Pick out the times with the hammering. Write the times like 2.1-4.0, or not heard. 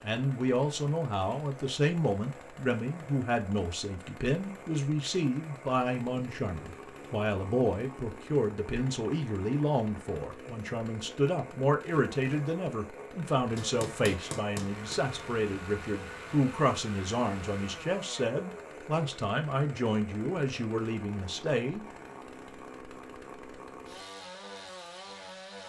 13.6-15.1.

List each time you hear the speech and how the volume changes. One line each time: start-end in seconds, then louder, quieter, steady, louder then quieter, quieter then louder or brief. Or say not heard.
0.0-21.9 steady.